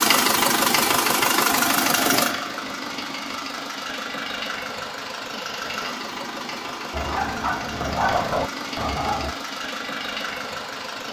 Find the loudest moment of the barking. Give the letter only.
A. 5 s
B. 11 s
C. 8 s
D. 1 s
C.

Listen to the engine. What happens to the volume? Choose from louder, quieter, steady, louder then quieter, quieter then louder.
quieter.